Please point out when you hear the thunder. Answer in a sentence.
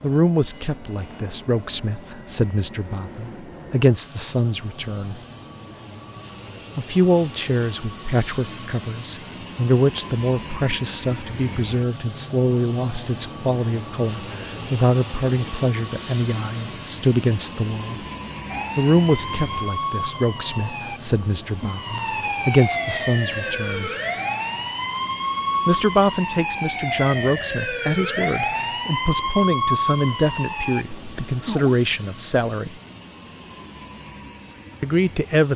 The thunder can't be heard in this clip.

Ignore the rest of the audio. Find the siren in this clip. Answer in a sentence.
You can hear the siren from 18.4 to 31.8 s.